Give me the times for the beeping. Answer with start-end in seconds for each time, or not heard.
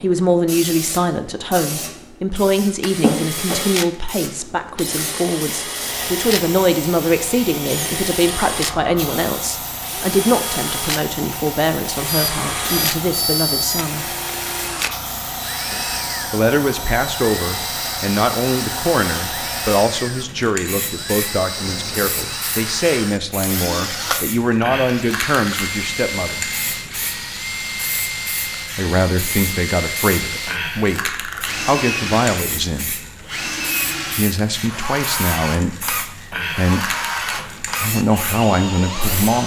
12.1-13.8, 21.6-22.4.